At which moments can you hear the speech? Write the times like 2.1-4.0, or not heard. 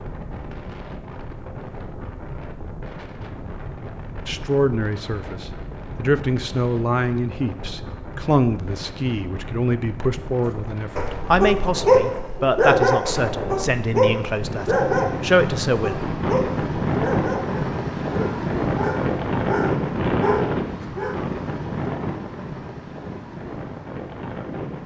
4.2-15.9.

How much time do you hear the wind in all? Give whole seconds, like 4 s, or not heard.
25 s.